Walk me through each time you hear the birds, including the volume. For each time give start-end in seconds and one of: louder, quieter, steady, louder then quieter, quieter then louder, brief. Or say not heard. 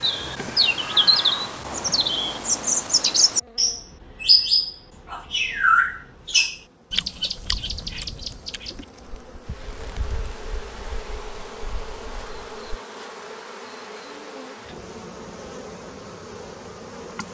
0.0-12.8 quieter.